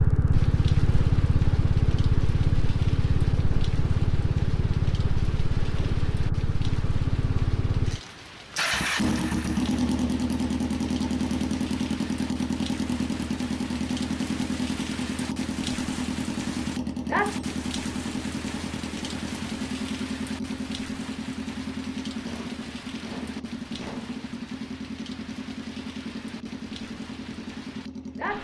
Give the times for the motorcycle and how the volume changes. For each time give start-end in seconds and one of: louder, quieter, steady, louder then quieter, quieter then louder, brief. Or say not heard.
0.0-28.3 quieter.